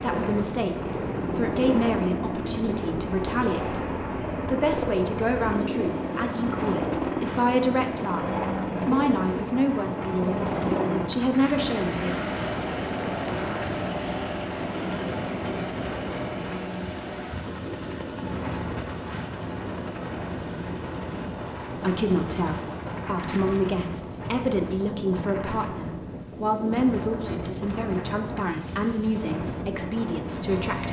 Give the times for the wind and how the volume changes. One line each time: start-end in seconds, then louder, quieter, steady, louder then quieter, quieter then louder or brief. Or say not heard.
0.0-30.8 steady.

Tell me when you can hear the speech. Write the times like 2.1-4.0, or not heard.
0.0-10.4, 11.1-12.2, 21.8-30.8.